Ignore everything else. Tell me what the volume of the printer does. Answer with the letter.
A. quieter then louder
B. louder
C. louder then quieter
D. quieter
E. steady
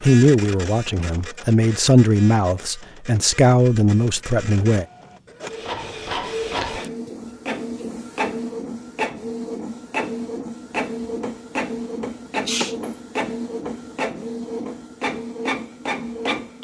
B.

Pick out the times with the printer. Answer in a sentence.
The printer can be heard from 0.0 to 16.6 s.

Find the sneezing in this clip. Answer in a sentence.
You can hear the sneezing from 12.3 to 12.9 s.